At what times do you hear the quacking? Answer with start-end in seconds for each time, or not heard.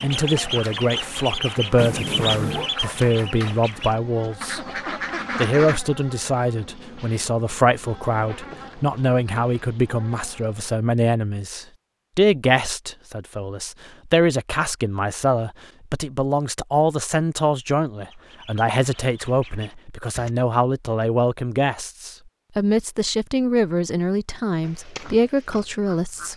0.0-5.8, 18.1-20.3, 24.6-26.3.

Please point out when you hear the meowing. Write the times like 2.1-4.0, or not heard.
1.8-2.7.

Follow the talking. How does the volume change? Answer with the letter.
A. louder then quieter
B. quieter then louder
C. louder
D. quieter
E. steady
E.